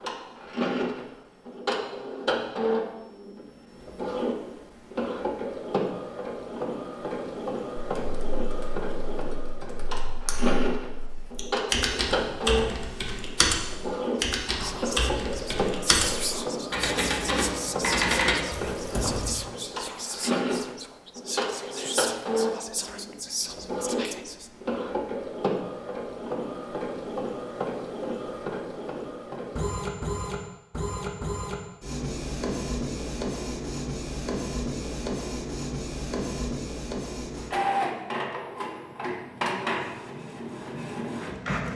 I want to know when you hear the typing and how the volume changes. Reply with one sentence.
The typing can be heard from 8.0 to 19.4 s, getting louder.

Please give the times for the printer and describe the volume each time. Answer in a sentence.
The printer can be heard from 0.0 to 41.7 s, at a steady volume.